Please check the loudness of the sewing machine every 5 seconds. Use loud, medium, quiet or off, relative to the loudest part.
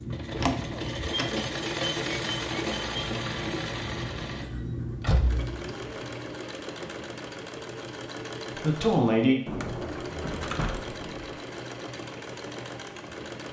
loud, medium, medium.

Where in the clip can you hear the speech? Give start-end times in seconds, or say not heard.
8.6-9.3.